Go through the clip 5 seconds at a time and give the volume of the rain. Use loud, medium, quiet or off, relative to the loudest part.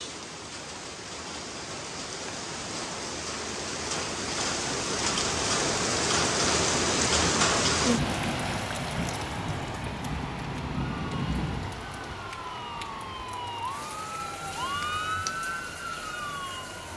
medium, loud, medium, quiet.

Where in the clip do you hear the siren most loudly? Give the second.
15 s.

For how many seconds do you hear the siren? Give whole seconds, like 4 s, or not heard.
6 s.